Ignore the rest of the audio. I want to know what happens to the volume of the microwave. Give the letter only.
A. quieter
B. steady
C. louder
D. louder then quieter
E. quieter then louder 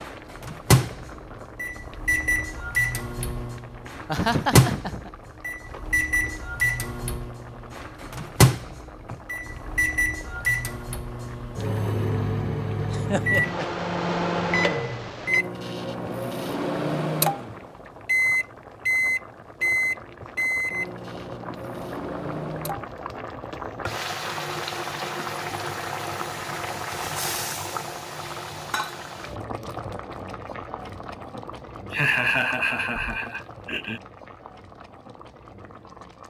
B.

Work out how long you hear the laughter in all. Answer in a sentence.
You can hear the laughter for 4 seconds altogether.